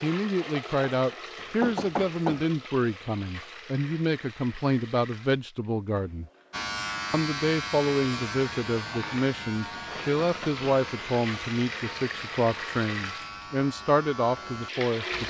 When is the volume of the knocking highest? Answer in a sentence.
The volume of the knocking peaks at 2 seconds.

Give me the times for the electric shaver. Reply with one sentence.
You can hear the electric shaver from 6.5 to 15.2 s.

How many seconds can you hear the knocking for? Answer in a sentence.
You can hear the knocking for 2 seconds altogether.